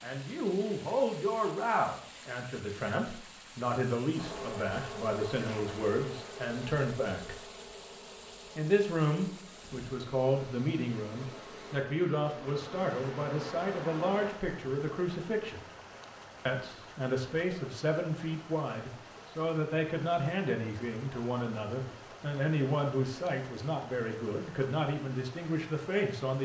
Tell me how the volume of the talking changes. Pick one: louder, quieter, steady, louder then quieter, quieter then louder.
steady.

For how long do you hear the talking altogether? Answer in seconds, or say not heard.
24 s.